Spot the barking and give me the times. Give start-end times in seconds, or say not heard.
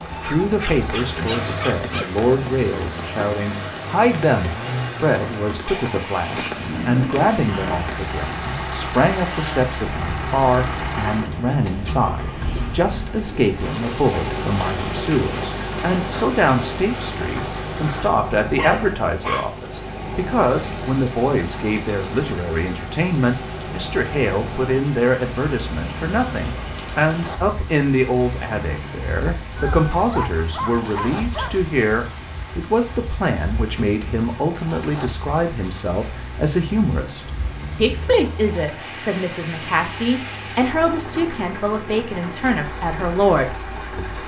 0.1-2.1, 18.6-19.6, 29.6-31.7.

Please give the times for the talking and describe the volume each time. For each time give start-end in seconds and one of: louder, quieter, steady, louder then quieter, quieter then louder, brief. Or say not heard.
0.1-44.2 steady.